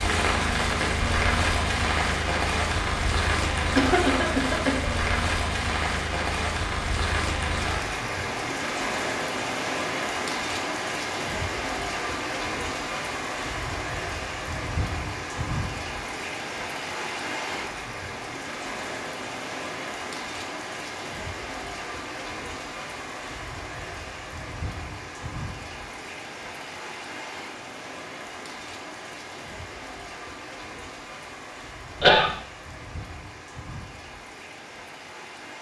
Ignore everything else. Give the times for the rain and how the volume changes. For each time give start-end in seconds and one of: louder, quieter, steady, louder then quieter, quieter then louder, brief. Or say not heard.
0.0-35.5 quieter.